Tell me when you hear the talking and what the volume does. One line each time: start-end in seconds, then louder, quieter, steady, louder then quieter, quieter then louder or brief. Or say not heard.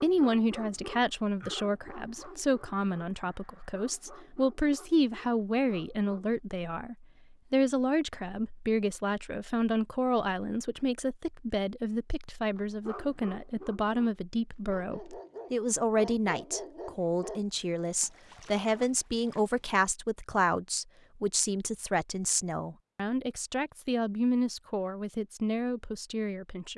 0.0-26.7 steady.